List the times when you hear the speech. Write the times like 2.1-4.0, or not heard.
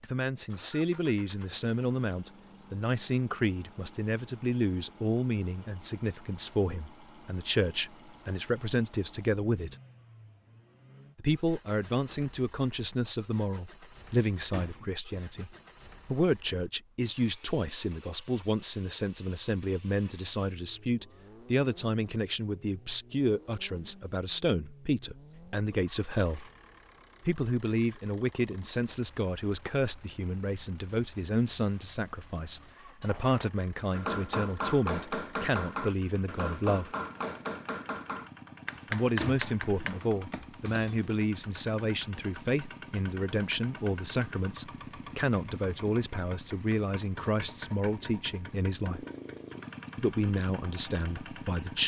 0.0-9.8, 11.2-26.4, 27.2-36.9, 38.9-49.0, 50.0-51.8.